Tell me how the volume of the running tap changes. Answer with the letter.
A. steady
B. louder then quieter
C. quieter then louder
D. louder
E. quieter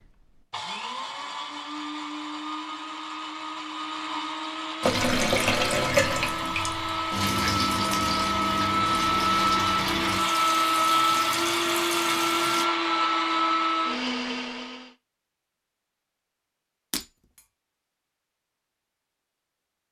E.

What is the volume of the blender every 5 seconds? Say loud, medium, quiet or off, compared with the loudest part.
medium, loud, loud, off.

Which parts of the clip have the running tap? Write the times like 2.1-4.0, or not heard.
4.8-12.7.